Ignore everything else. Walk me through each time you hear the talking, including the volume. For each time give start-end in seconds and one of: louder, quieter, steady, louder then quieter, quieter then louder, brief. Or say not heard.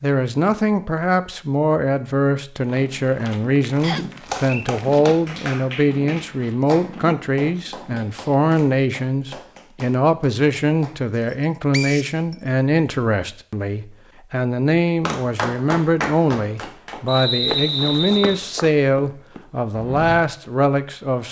0.0-21.2 steady.